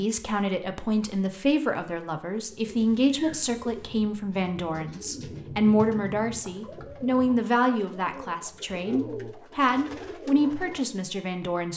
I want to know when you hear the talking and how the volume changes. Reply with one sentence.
The talking can be heard from 0.0 to 11.7 s, at a steady volume.